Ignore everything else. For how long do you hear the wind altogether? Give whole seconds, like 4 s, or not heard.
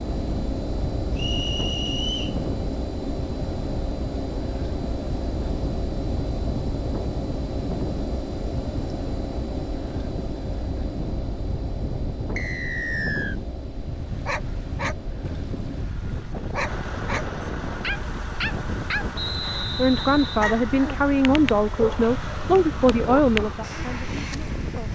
25 s.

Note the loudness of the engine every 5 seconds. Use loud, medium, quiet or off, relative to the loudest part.
loud, loud, medium, medium, medium.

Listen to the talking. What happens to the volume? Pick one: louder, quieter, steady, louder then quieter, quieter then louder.
quieter.